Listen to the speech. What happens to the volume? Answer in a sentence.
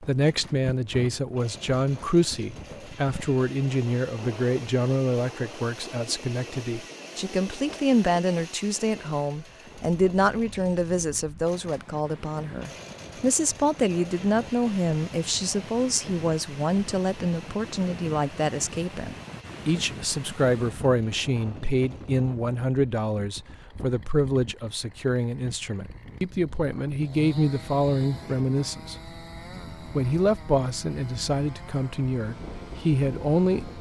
The loudness of the speech stays about the same.